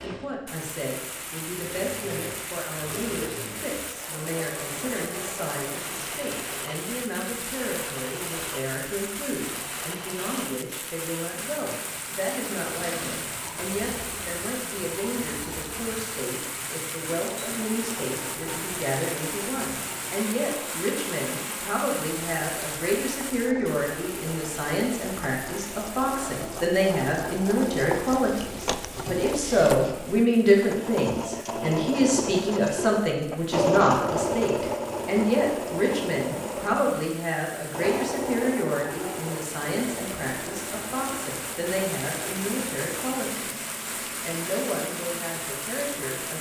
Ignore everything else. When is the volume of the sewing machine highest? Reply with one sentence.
The volume of the sewing machine peaks at 34 seconds.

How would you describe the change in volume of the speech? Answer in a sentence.
The loudness of the speech goes up, then down.